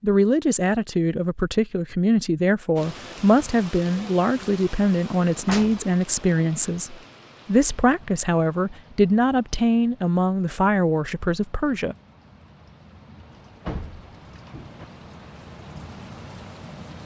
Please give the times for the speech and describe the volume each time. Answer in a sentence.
You can hear the speech from 0.0 to 11.9 s, at a steady volume.